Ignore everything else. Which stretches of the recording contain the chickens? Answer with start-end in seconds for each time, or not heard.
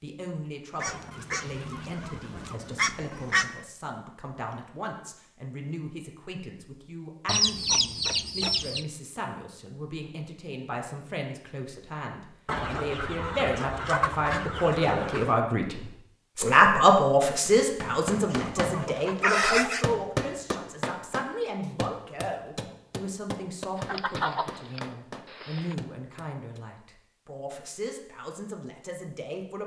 0.8-3.6, 7.2-8.8, 12.4-15.3, 18.1-19.9, 23.8-25.8.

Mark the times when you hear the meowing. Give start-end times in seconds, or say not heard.
not heard.